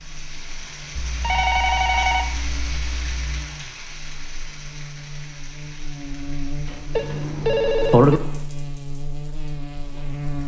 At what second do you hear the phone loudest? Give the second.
8 s.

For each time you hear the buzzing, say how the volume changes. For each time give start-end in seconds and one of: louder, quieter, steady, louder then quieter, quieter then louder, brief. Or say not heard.
0.0-10.4 louder.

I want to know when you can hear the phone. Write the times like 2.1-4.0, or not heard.
0.9-3.3, 7.0-8.2.